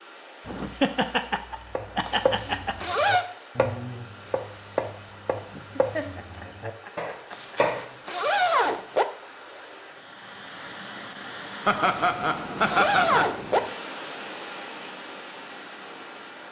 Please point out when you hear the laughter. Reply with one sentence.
You can hear the laughter from 0.5 to 2.8 s, from 5.5 to 7.5 s and from 11.7 to 13.3 s.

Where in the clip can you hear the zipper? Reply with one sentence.
You can hear the zipper from 2.0 to 3.2 s, from 7.3 to 9.1 s and from 11.8 to 13.6 s.